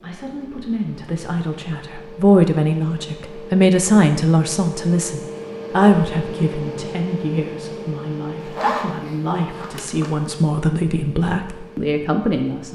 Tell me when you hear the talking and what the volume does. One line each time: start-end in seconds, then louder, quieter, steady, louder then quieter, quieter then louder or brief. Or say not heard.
0.0-12.7 quieter then louder.